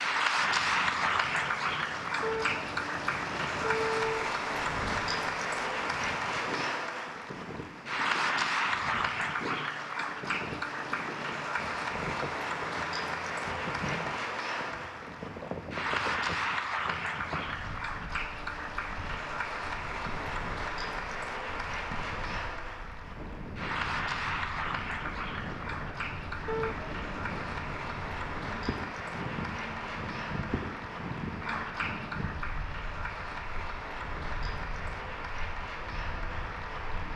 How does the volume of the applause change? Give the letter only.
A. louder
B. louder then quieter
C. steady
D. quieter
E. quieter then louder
D.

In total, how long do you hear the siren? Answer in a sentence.
The siren can't be heard in this clip.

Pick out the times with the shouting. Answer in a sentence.
The shouting can't be heard in this clip.